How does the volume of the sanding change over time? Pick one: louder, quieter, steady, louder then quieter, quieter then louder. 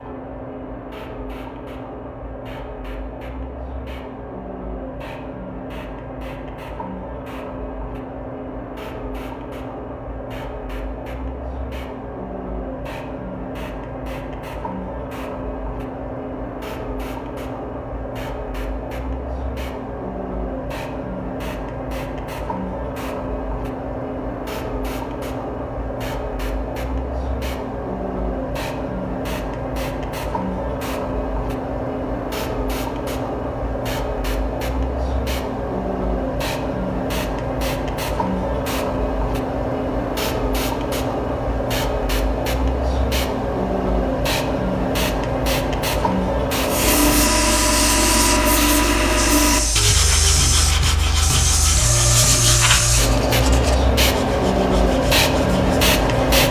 quieter.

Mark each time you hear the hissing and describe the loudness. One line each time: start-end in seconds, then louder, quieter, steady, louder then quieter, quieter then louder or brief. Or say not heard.
0.0-56.4 louder.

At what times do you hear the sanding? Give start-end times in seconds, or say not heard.
46.6-56.4.